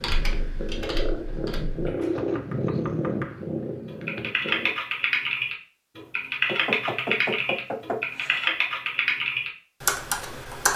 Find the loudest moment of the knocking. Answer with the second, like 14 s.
7 s.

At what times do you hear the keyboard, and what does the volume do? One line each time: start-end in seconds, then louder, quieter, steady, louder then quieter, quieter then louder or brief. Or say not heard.
0.0-1.9 brief
3.9-10.7 steady.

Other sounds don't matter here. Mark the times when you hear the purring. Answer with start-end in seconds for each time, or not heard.
0.0-4.8.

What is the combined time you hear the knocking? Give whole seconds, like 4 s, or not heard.
4 s.